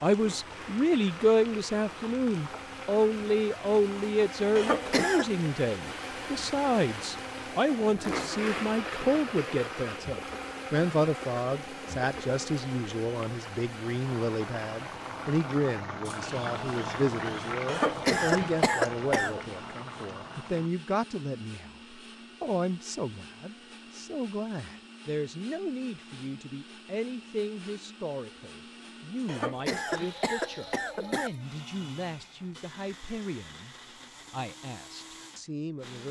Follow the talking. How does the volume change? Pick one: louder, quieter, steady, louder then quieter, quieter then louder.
quieter.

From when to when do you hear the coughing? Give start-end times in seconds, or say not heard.
4.5-5.3, 17.6-19.4, 29.2-31.3.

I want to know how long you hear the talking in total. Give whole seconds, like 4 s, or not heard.
36 s.